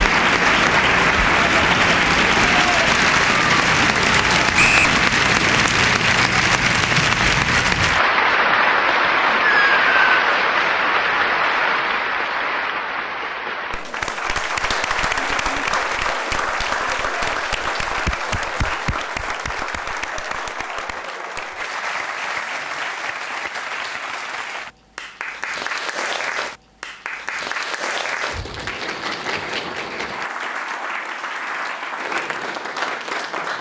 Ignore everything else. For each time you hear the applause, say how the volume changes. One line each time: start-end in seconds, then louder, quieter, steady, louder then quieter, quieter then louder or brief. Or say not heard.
0.0-33.5 quieter.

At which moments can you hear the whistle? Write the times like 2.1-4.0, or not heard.
4.5-5.0.